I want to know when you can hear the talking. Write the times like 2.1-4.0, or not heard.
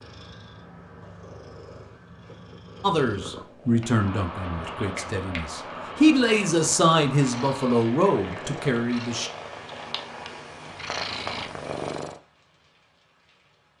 2.8-9.3.